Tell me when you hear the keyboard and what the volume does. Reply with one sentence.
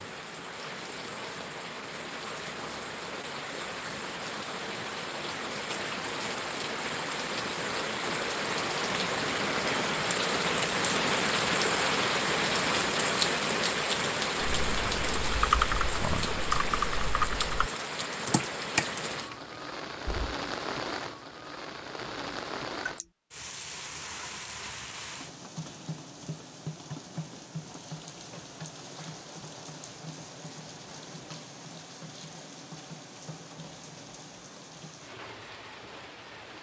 You can hear the keyboard from 14.4 to 20.4 s, getting quieter.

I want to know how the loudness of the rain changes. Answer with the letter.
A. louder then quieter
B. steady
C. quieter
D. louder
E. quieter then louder
A.